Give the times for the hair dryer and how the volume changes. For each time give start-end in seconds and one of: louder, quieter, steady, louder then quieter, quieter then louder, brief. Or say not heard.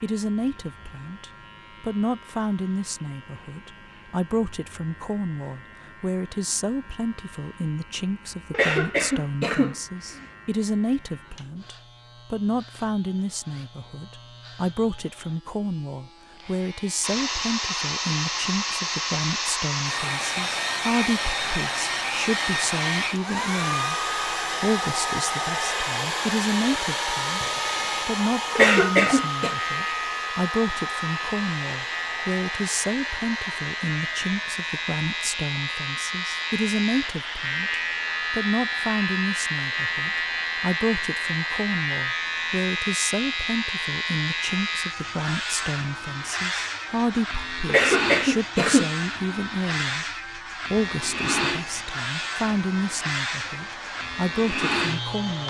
17.0-55.4 quieter.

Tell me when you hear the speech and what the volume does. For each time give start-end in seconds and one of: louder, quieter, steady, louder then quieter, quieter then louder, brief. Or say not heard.
0.0-55.4 steady.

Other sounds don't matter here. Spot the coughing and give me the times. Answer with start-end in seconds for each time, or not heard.
8.5-10.2, 28.6-29.6, 47.6-49.4.